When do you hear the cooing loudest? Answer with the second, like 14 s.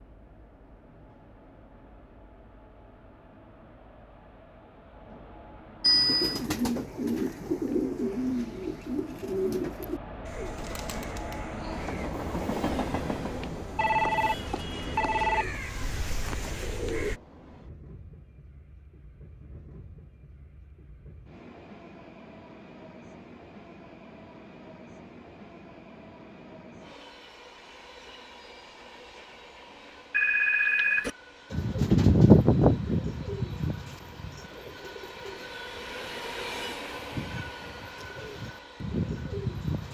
32 s.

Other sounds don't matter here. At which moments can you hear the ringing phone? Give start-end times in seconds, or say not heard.
5.8-6.5, 13.8-15.4, 30.1-31.1.